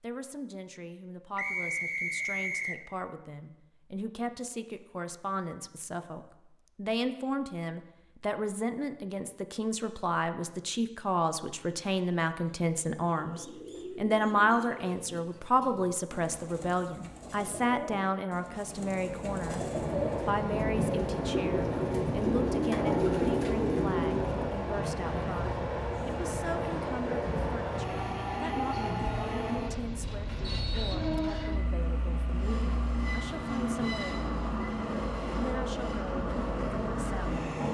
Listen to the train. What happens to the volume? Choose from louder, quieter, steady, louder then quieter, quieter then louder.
steady.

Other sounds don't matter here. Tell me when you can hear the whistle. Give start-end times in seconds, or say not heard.
1.4-2.8, 30.4-31.6.